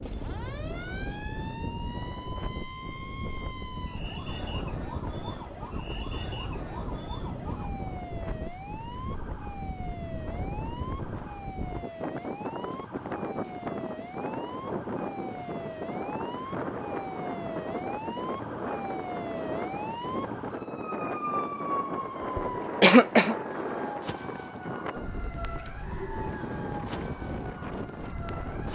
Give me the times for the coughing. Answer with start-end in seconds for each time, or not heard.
22.4-23.4.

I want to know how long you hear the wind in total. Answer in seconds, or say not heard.
29 s.